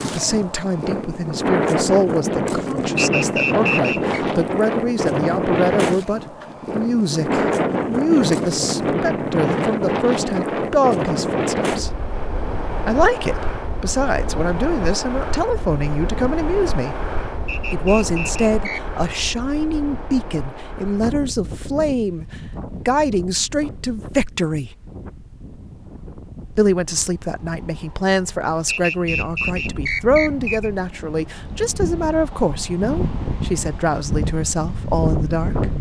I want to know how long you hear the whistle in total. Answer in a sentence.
The whistle can be heard for 5 seconds in total.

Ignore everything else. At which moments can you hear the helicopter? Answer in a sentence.
The helicopter can't be heard in this clip.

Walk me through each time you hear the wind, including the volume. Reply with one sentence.
The wind can be heard from 0.0 to 35.7 s, getting quieter then louder.